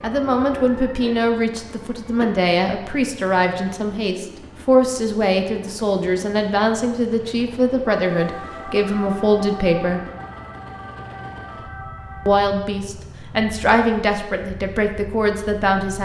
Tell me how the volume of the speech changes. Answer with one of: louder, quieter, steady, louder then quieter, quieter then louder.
steady.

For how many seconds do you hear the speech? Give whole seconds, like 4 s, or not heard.
14 s.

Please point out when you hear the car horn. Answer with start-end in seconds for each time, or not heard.
not heard.